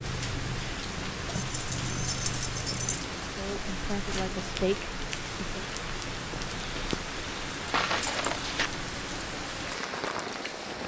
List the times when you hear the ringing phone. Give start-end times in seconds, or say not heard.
7.6-8.8.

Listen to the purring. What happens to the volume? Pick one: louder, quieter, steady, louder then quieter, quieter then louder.
quieter.